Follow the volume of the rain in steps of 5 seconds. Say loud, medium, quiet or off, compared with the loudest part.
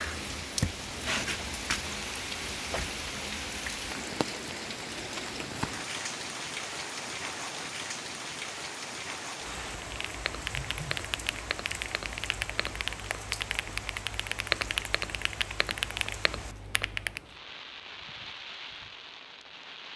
loud, loud, medium, medium.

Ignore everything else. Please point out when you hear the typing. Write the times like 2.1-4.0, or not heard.
9.8-17.2.